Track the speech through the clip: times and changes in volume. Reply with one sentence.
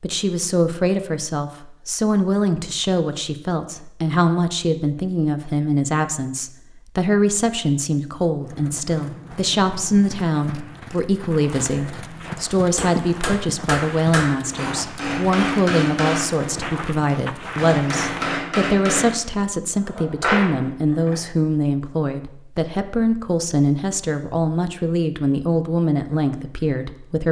You can hear the speech from 0.0 to 27.2 s, at a steady volume.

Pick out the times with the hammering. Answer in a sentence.
You can hear the hammering from 12.3 to 21.3 s.